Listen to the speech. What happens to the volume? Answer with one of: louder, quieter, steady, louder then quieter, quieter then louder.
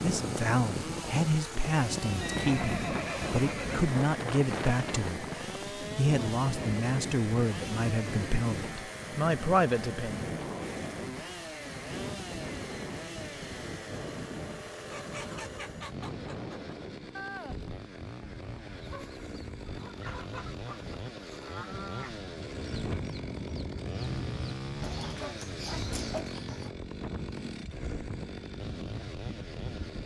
steady.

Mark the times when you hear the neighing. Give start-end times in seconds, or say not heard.
2.1-3.9.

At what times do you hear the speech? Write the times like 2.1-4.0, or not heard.
0.0-10.5.